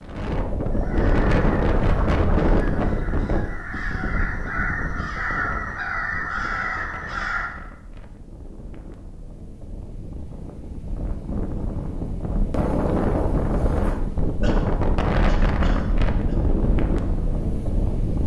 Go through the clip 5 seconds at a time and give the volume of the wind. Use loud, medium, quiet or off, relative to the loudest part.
loud, quiet, loud, loud.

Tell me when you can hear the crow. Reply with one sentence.
You can hear the crow from 0.7 to 7.5 s.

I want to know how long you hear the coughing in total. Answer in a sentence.
You can hear the coughing for 2 seconds altogether.